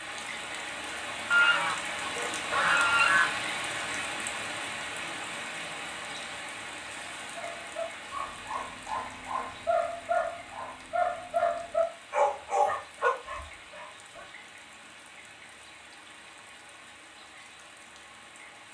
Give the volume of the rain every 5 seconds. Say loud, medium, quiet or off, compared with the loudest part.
loud, medium, quiet, quiet.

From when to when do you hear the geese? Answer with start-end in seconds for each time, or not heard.
1.3-3.2.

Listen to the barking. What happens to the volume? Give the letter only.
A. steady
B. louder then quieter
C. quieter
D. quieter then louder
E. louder
E.